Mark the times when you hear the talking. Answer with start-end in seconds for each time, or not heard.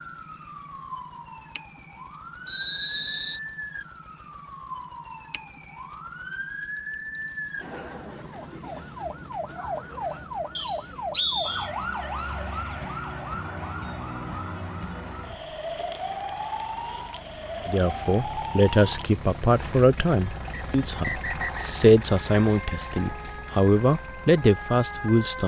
17.6-25.4.